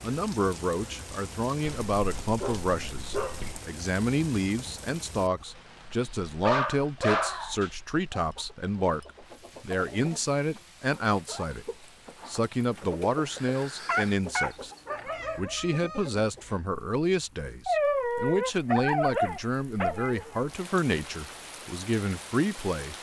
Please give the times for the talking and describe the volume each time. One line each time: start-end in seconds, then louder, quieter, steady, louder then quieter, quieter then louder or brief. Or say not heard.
0.0-11.7 steady
12.2-14.7 brief
15.3-22.9 steady.